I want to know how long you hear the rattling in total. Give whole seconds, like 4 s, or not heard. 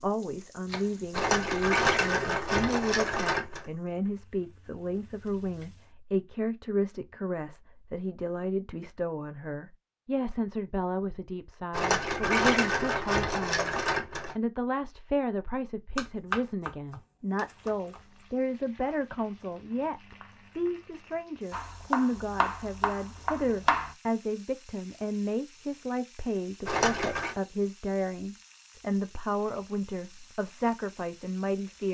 6 s.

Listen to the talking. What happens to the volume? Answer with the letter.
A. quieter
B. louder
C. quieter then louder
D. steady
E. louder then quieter
D.